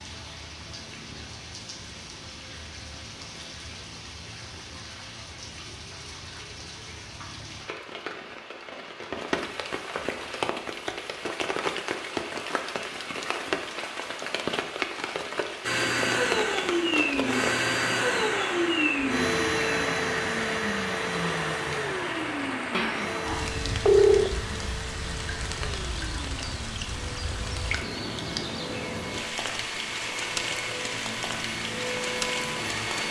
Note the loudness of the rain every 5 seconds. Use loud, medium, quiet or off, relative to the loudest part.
medium, medium, loud, loud, loud, loud, loud.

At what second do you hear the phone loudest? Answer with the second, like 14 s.
24 s.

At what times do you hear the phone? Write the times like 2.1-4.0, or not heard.
22.7-24.3.